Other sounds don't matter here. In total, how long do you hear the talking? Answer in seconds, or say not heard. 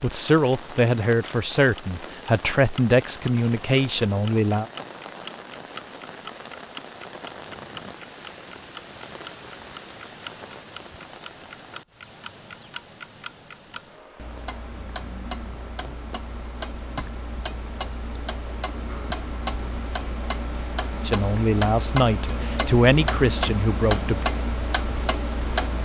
8 s.